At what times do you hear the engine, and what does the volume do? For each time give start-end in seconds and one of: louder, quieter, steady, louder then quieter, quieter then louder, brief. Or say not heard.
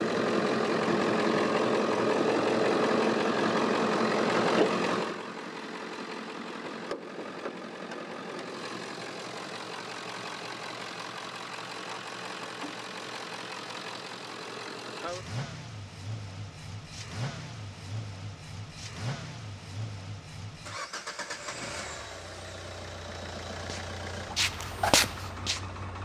0.0-26.0 quieter.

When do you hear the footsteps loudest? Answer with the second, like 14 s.
25 s.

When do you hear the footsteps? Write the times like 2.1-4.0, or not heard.
23.6-25.9.